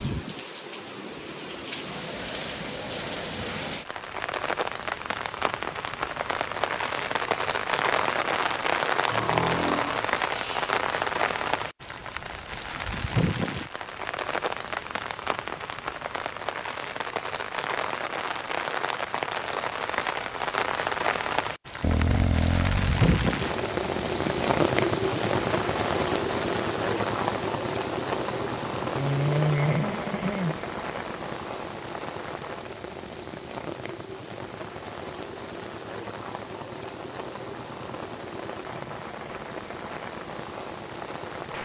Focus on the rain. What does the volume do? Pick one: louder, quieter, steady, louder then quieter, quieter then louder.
quieter.